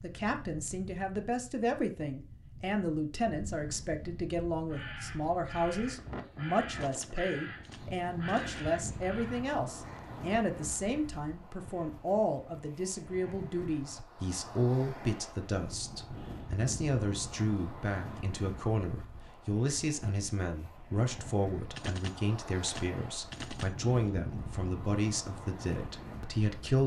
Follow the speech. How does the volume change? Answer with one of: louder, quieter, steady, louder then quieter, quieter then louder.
steady.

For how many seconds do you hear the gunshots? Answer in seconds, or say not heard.
4 s.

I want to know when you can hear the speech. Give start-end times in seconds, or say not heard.
0.0-26.8.